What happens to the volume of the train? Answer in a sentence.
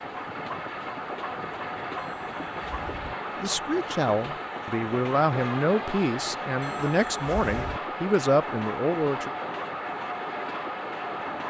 The volume of the train stays about the same.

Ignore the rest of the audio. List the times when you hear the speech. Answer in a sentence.
You can hear the speech from 3.4 to 9.3 s.